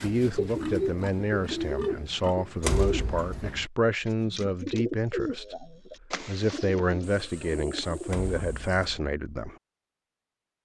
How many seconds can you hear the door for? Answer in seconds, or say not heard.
2 s.